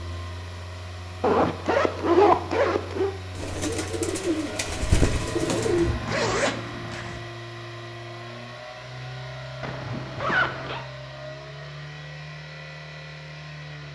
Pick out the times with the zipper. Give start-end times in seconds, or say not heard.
1.2-3.1, 5.5-7.2, 9.6-10.8.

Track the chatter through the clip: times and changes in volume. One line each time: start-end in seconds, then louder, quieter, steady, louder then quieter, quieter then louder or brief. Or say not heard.
not heard.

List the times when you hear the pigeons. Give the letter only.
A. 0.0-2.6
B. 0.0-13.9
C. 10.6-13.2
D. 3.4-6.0
D.